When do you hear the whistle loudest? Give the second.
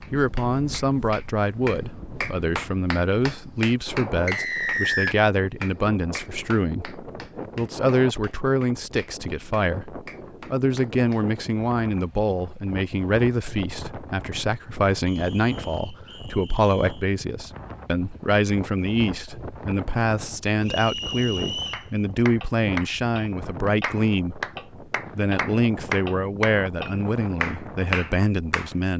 5 s.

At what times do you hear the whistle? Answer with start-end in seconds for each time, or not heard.
4.2-5.2, 15.1-17.1, 20.6-21.9.